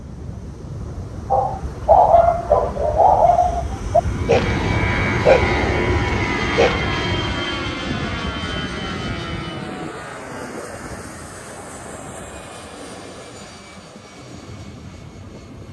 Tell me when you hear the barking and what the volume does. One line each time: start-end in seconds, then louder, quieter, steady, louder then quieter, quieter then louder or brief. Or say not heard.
1.3-7.5 quieter.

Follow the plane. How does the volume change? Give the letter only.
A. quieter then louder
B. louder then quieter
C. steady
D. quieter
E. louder
B.